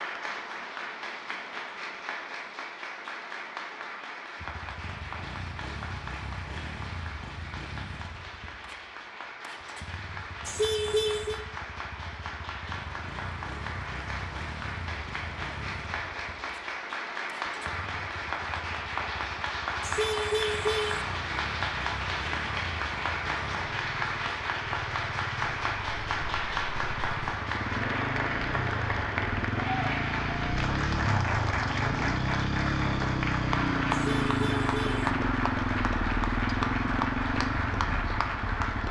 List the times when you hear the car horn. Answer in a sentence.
The car horn can be heard from 10.4 to 11.4 s, from 19.8 to 21.1 s and from 33.9 to 35.1 s.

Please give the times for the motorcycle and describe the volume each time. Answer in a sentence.
You can hear the motorcycle from 4.3 to 38.8 s, getting louder.